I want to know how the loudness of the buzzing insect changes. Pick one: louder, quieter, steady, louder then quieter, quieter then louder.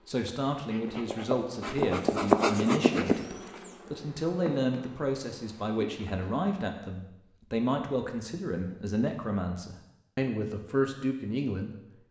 louder then quieter.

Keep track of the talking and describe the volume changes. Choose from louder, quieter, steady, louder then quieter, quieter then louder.
steady.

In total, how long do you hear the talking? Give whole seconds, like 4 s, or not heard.
12 s.